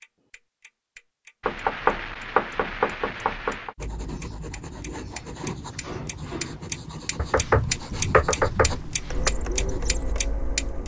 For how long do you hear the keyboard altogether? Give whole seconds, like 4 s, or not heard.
not heard.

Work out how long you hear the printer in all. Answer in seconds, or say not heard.
2 s.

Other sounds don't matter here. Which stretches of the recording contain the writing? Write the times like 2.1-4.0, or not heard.
3.8-10.2.